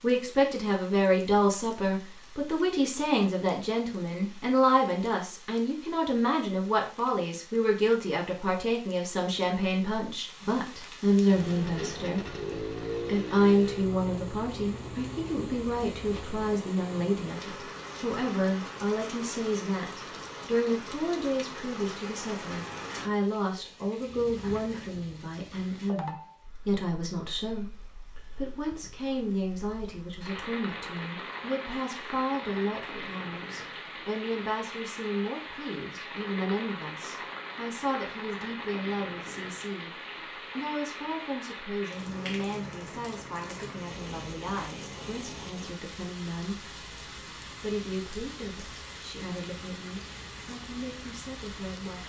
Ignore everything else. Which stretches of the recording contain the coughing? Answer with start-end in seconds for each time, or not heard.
not heard.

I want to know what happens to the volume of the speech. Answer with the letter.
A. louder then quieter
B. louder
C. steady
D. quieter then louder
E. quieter
E.